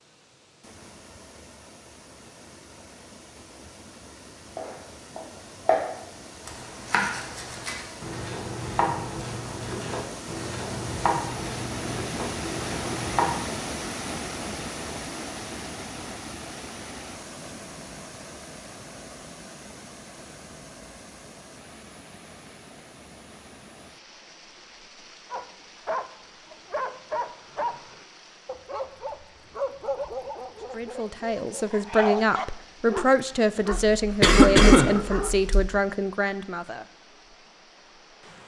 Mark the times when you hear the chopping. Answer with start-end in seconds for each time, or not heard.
4.5-5.8, 6.5-13.3.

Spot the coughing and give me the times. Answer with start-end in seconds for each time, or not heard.
33.7-35.6.